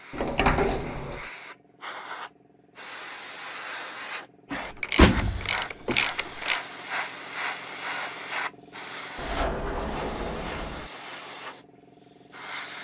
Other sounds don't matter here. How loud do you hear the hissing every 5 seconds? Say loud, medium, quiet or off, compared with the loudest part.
medium, loud, medium.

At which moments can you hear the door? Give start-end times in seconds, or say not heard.
0.1-1.2, 4.5-6.3, 9.2-10.9.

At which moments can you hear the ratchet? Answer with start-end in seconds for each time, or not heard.
4.7-6.6.